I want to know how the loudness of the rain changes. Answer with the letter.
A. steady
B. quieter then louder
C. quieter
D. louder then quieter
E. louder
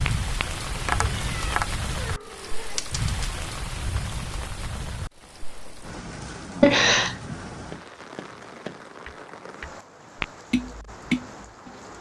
C.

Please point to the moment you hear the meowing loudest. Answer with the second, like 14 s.
7 s.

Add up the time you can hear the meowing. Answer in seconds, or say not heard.
3 s.